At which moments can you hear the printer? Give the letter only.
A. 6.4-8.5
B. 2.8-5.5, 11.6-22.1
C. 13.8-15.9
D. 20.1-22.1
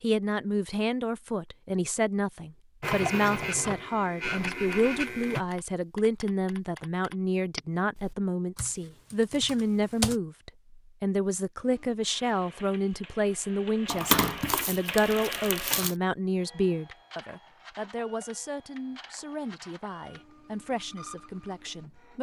B.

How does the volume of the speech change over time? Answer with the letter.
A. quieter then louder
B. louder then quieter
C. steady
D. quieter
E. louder
D.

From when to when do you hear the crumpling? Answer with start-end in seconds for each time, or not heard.
13.8-15.9.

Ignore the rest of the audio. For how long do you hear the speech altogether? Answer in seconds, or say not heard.
22 s.